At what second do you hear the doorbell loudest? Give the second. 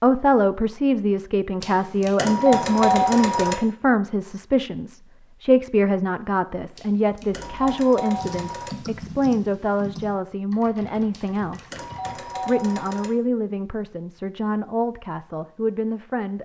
3 s.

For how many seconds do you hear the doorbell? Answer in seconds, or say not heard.
6 s.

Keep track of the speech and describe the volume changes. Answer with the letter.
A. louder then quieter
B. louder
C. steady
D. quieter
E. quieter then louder
D.